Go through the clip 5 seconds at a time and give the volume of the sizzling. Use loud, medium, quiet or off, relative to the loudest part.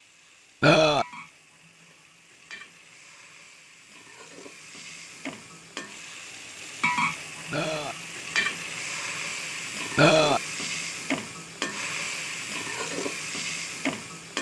quiet, loud, loud.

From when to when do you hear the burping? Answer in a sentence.
You can hear the burping from 0.6 to 1.1 s, from 7.5 to 8.0 s and from 9.9 to 10.4 s.